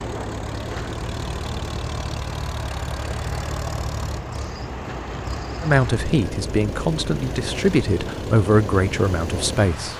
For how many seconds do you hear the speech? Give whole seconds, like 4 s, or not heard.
4 s.